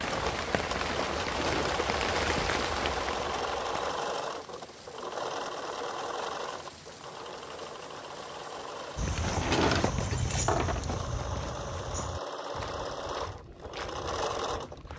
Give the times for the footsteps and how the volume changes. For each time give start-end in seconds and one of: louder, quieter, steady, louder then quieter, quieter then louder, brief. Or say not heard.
8.9-14.9 quieter.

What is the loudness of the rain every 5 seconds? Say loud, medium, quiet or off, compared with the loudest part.
loud, quiet, off.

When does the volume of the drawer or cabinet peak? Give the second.
10 s.